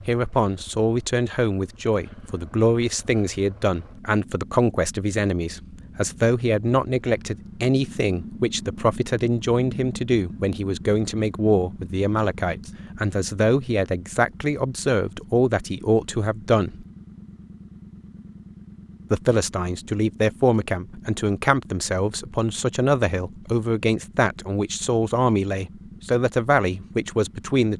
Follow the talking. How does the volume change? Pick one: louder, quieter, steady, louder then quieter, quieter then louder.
steady.